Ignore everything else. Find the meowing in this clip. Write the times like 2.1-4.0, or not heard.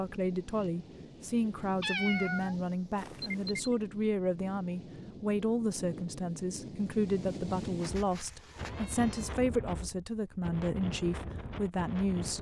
1.8-3.7, 7.8-9.4.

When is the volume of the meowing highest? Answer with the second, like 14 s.
2 s.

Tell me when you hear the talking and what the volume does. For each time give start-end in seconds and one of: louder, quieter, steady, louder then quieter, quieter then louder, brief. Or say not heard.
0.0-12.3 steady.